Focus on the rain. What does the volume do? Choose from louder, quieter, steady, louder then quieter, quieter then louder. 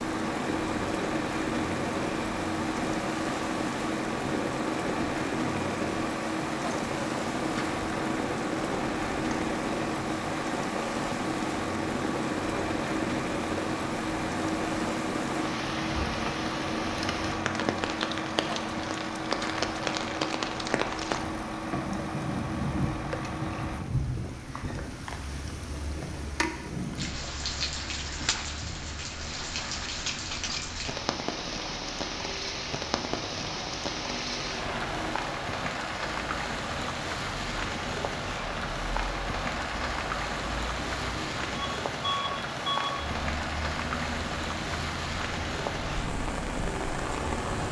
steady.